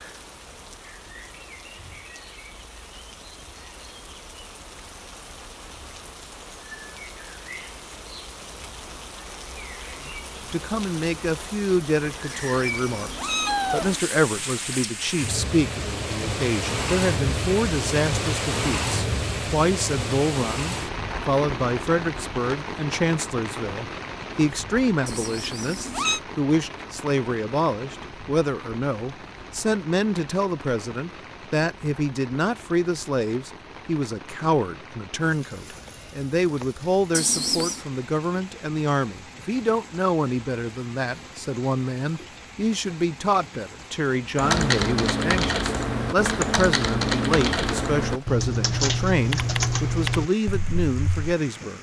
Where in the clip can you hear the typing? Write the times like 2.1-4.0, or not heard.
44.4-51.4.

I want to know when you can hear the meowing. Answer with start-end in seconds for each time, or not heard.
12.2-14.0, 25.1-26.2, 37.1-37.8.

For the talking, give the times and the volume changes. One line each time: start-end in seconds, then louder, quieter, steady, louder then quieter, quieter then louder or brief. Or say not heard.
10.1-51.7 steady.